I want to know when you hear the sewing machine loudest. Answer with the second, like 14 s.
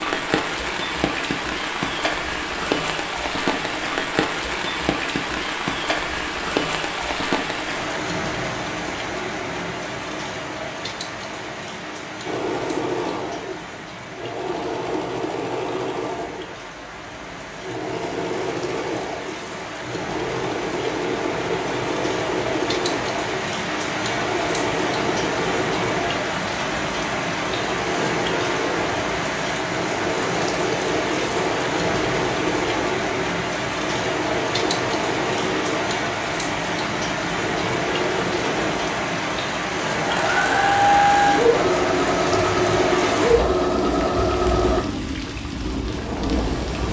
41 s.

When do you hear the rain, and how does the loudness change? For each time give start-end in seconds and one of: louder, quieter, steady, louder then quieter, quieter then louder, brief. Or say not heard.
0.0-46.8 quieter then louder.